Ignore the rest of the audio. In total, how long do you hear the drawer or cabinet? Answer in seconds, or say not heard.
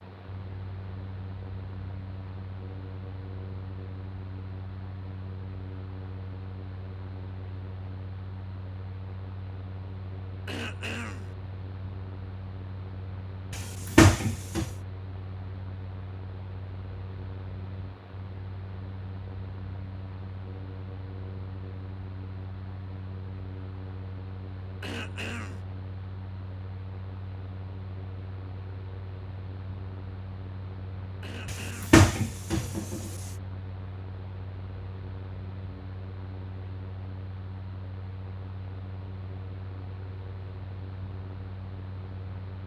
3 s.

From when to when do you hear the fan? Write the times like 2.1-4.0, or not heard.
0.0-42.6.